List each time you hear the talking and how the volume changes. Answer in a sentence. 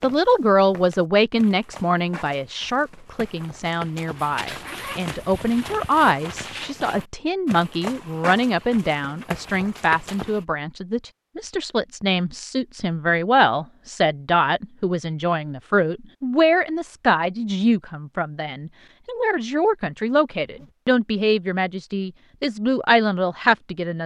The talking can be heard from 0.0 to 24.0 s, at a steady volume.